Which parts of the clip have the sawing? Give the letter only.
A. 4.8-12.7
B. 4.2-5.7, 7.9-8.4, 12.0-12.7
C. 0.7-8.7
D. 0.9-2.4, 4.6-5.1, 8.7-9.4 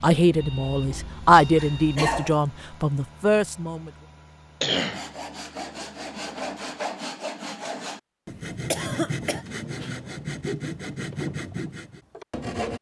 A.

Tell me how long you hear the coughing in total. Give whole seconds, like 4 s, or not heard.
3 s.